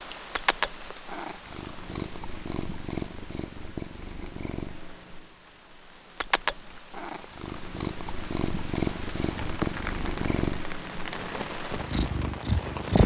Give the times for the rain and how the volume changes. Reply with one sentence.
The rain can be heard from 0.0 to 13.0 s, getting quieter then louder.